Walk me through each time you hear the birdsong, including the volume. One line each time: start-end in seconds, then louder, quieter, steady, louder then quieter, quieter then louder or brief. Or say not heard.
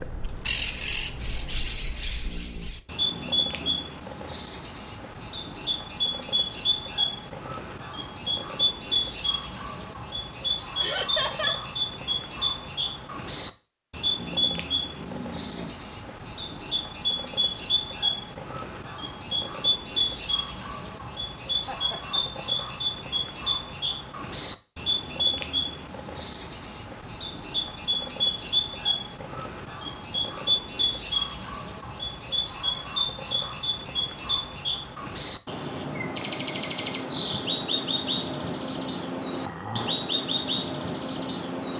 0.0-41.7 steady.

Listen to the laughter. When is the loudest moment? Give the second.
11 s.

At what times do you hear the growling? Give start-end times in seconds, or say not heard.
2.2-3.9, 14.2-15.8, 39.3-40.0.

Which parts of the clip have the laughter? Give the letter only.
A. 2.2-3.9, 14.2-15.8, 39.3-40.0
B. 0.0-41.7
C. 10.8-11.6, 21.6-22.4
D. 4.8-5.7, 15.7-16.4
C.